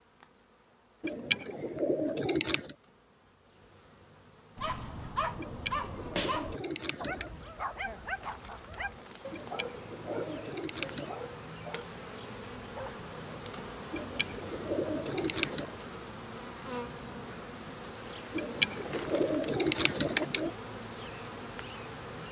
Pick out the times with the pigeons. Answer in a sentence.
You can hear the pigeons from 1.0 to 2.8 s, from 5.3 to 7.3 s, from 9.3 to 11.2 s, from 13.9 to 15.8 s and from 18.4 to 20.5 s.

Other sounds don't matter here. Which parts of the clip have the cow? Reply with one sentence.
The cow can't be heard in this clip.